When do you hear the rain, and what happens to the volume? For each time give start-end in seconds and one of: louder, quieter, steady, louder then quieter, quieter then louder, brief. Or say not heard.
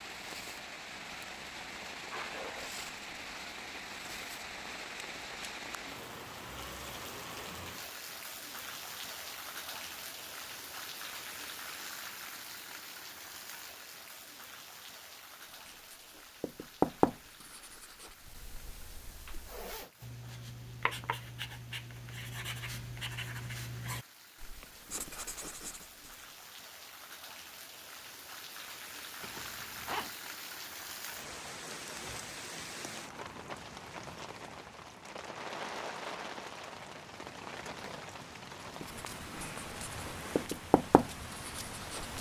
0.0-42.1 quieter then louder.